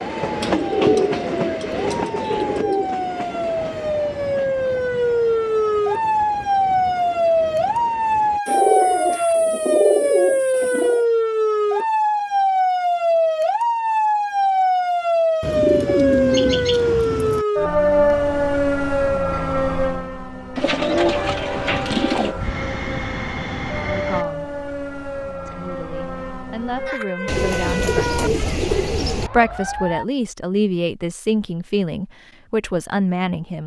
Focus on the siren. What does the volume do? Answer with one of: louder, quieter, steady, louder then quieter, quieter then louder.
quieter.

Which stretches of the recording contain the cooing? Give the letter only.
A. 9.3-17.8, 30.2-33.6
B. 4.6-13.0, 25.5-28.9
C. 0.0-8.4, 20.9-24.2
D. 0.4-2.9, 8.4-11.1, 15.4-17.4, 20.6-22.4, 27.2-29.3
D.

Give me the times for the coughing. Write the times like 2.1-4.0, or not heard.
not heard.